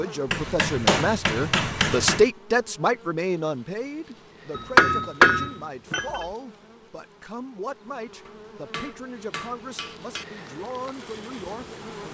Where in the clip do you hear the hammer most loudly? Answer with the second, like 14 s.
5 s.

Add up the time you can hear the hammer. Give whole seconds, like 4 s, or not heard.
6 s.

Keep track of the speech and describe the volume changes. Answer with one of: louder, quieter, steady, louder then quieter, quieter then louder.
quieter.